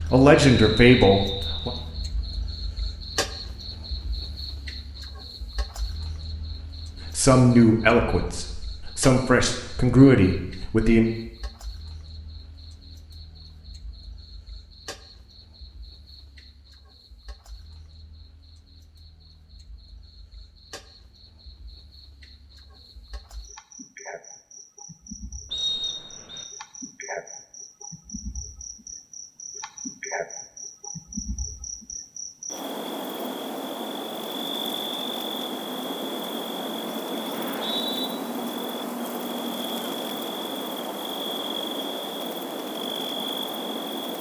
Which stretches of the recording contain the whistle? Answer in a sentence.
You can hear the whistle from 0.6 to 1.9 s, from 25.5 to 26.4 s and from 37.3 to 38.1 s.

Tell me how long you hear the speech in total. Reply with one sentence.
You can hear the speech for 6 seconds altogether.